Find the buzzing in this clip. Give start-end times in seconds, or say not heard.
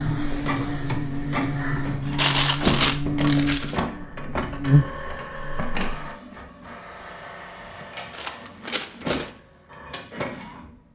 0.0-6.1.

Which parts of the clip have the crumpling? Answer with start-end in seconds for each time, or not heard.
2.1-3.8, 8.1-9.3.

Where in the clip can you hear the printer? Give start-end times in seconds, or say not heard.
0.0-10.8.